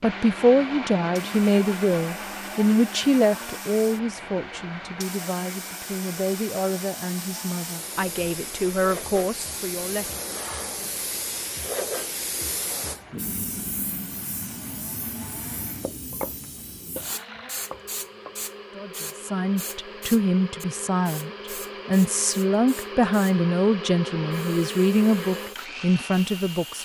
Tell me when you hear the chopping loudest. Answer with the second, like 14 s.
16 s.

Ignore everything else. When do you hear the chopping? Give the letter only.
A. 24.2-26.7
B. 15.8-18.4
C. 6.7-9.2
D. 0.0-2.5
B.